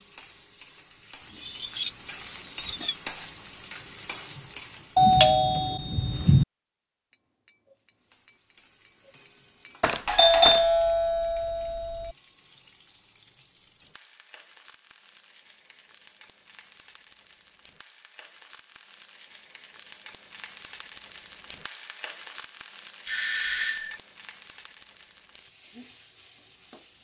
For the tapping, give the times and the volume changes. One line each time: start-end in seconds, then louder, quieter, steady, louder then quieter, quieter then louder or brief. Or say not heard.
7.1-12.3 louder then quieter.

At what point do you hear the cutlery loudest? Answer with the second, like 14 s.
2 s.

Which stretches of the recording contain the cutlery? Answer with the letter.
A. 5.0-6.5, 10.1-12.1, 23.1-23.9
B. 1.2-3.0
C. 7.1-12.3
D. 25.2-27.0
B.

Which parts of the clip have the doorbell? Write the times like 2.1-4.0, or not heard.
5.0-6.5, 10.1-12.1, 23.1-23.9.